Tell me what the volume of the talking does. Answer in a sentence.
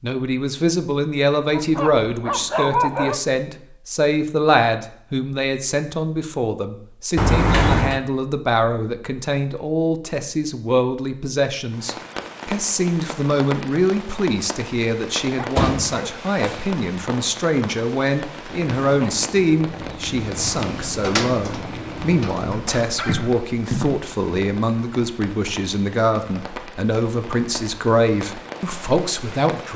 The volume of the talking stays about the same.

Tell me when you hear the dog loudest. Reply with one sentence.
The loudest moment of the dog is at 3 seconds.